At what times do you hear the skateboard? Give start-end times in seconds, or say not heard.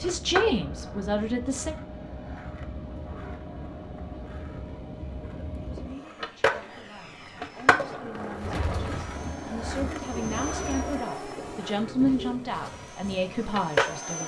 0.0-14.2.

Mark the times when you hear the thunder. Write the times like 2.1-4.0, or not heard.
8.2-10.8.